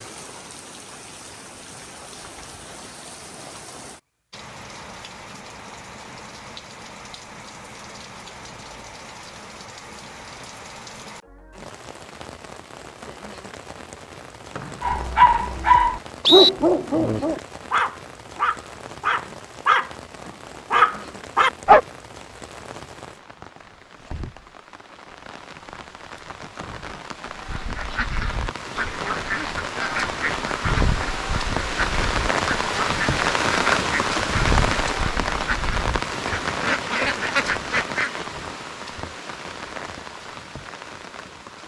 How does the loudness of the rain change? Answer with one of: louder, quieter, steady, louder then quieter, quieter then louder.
louder.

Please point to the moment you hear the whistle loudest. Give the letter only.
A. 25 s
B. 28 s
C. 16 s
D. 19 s
C.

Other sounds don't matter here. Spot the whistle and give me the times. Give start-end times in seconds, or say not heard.
14.6-16.5, 26.6-27.6.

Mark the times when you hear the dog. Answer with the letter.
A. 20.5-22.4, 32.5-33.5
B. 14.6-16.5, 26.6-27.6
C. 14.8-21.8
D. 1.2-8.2
C.